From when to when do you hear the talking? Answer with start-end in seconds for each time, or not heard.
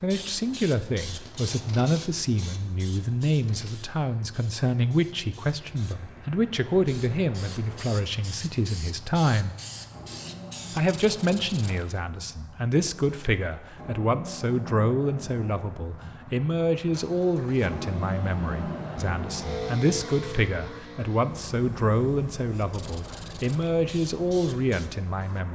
0.0-9.6, 10.8-25.5.